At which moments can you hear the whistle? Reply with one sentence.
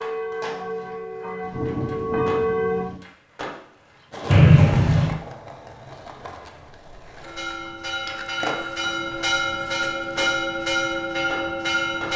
You can hear the whistle from 4.3 to 5.2 s.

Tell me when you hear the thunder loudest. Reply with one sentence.
The loudest moment of the thunder is at 2 seconds.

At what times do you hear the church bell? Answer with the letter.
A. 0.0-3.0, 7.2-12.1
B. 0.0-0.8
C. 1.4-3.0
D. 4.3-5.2
A.